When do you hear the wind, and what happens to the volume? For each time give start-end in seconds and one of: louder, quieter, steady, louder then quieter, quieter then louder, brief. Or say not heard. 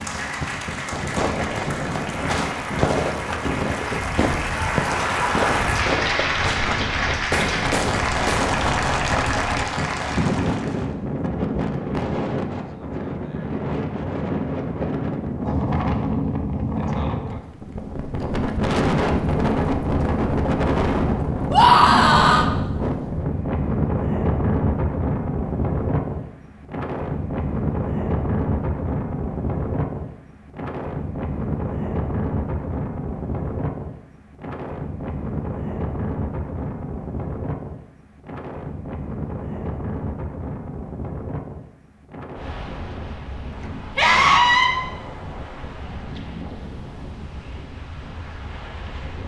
0.0-49.2 louder then quieter.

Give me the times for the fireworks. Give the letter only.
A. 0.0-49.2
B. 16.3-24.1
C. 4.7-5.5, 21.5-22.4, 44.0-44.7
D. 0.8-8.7
D.